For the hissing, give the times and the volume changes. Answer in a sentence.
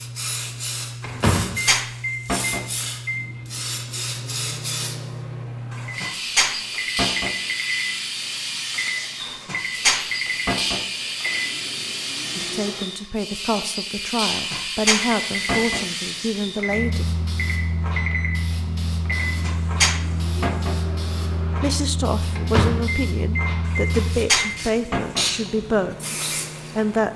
You can hear the hissing from 0.0 to 27.0 s, at a steady volume.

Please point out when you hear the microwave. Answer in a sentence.
The microwave can be heard from 1.0 to 12.8 s and from 15.0 to 27.1 s.